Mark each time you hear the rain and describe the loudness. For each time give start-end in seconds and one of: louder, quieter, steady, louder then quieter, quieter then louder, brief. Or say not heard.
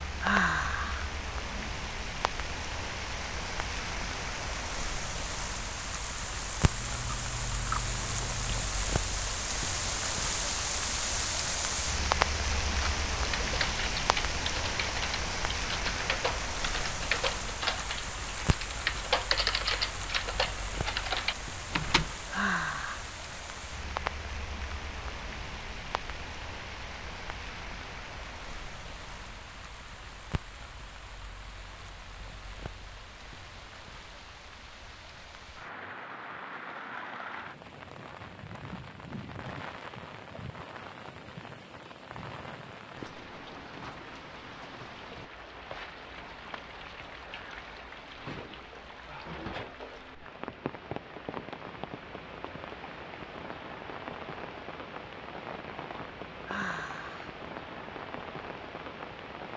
0.0-59.5 quieter.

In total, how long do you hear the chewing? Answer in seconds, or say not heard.
2 s.